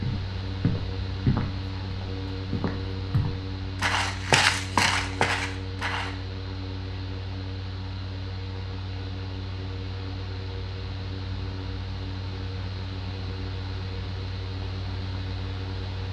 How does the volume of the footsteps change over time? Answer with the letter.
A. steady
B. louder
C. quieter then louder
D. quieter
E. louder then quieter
C.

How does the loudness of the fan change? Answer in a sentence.
The volume of the fan stays about the same.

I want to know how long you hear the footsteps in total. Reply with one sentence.
You can hear the footsteps for 6 seconds altogether.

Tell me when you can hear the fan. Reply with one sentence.
The fan can be heard from 0.0 to 16.0 s.